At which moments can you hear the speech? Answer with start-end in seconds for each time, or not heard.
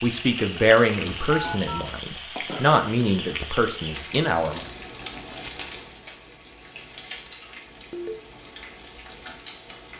0.0-4.7.